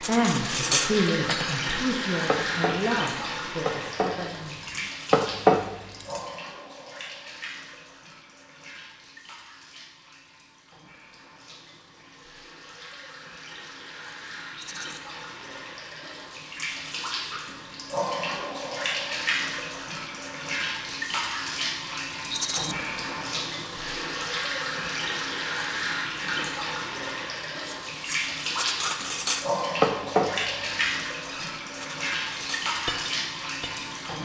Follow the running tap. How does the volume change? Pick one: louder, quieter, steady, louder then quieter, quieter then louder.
quieter then louder.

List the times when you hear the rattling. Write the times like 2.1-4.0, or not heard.
14.6-15.0, 22.3-22.8.